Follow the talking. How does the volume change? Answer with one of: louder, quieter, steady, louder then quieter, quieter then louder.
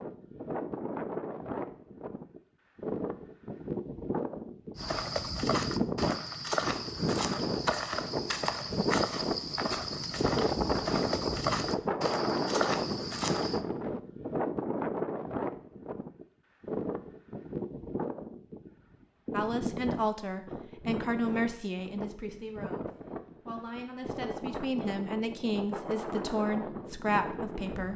quieter then louder.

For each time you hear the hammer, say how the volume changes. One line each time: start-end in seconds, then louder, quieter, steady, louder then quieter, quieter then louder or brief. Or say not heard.
not heard.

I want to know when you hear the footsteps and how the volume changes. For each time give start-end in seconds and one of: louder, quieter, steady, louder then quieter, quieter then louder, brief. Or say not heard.
4.8-13.6 steady.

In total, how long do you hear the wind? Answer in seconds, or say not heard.
28 s.